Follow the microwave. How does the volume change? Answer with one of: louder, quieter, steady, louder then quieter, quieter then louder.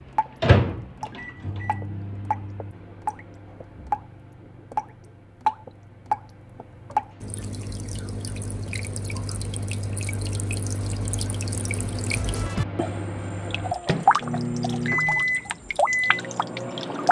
quieter then louder.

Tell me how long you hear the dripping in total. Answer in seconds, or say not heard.
17 s.